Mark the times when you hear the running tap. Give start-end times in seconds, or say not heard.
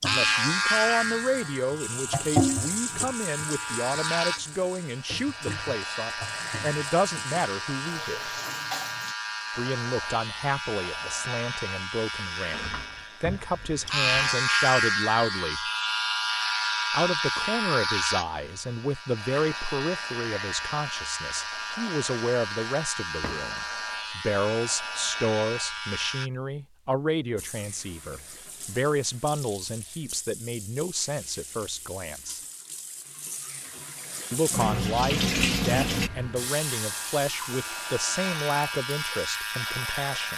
0.0-9.2, 27.4-40.3.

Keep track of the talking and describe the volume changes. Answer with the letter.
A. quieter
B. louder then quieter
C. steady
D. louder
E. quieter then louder
C.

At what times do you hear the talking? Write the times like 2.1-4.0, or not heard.
0.0-8.3, 9.6-15.7, 16.9-32.4, 34.3-40.3.